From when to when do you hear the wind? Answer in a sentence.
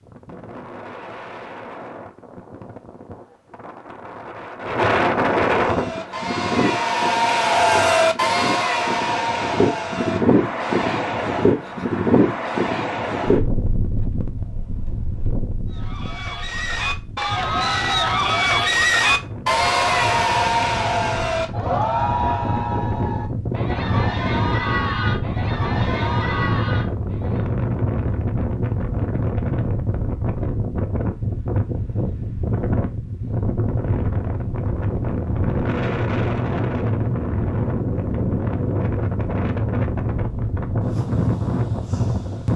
The wind can be heard from 0.0 to 42.5 s.